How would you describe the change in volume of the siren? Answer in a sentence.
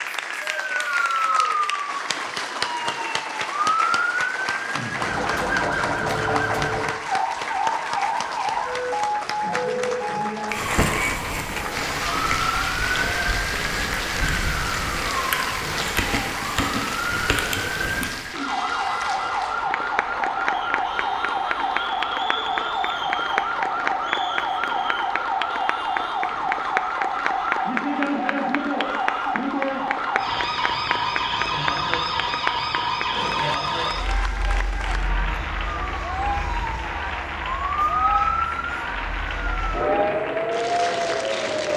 The loudness of the siren stays about the same.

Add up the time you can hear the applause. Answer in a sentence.
The applause can be heard for 42 seconds in total.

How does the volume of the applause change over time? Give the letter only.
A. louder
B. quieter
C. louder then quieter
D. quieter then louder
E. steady
E.